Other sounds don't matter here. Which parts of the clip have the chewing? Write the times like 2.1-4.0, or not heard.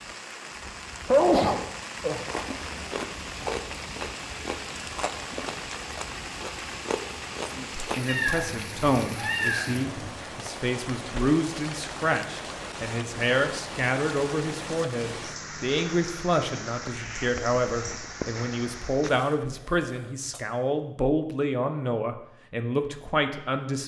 2.1-8.2.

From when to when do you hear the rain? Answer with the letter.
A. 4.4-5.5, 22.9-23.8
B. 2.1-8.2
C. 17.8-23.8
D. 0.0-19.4
D.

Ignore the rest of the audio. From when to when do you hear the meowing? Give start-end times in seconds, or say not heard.
8.1-10.1.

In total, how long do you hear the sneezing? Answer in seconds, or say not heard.
2 s.